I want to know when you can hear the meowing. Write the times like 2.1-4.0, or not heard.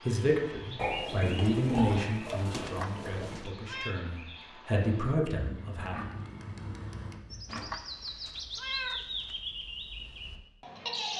2.5-4.0, 7.5-9.4.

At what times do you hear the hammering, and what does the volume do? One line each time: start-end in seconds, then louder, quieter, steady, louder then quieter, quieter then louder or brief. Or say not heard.
not heard.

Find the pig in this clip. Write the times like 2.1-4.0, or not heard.
0.8-3.5, 5.8-7.8.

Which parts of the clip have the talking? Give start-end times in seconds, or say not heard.
0.0-6.0.